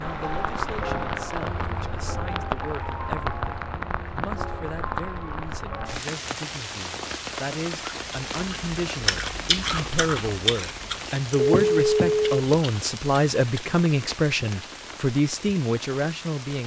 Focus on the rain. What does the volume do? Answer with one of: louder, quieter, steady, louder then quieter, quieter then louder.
quieter.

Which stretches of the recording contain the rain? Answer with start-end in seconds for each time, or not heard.
0.0-16.6.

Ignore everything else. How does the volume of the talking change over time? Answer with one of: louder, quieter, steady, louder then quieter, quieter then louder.
louder.